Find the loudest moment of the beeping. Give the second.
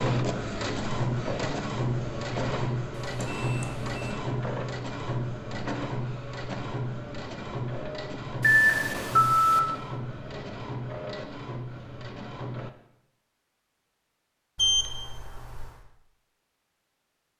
9 s.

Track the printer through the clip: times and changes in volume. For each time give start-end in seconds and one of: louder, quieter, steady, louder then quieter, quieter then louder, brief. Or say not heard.
0.0-12.7 quieter.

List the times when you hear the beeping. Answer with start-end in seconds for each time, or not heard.
2.9-4.0, 8.4-9.6, 14.6-15.8.